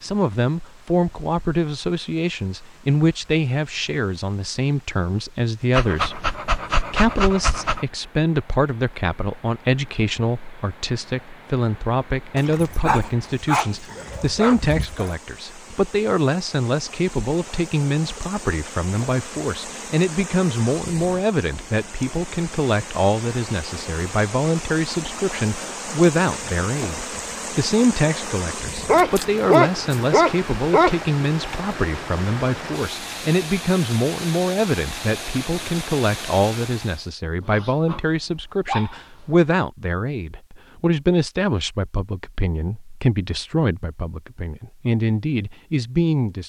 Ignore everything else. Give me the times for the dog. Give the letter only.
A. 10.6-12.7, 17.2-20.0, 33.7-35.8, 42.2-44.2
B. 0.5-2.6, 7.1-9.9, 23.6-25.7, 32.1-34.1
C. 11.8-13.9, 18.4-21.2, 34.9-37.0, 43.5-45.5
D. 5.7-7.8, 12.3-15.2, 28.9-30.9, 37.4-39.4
D.